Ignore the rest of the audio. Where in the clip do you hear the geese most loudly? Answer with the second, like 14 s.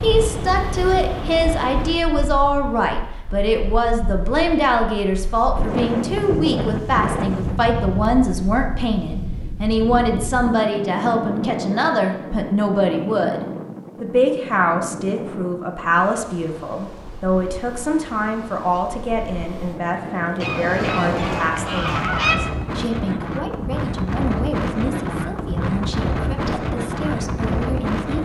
22 s.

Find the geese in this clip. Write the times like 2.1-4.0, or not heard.
20.4-22.4.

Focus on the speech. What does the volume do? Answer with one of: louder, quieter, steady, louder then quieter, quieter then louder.
quieter.